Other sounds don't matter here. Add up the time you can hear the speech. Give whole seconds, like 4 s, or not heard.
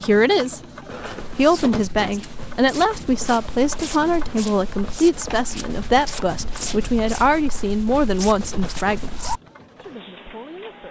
10 s.